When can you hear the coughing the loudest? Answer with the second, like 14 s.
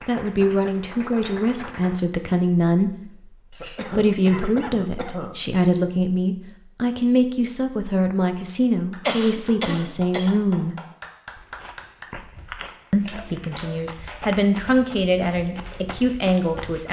9 s.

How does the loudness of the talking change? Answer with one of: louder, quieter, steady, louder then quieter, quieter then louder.
steady.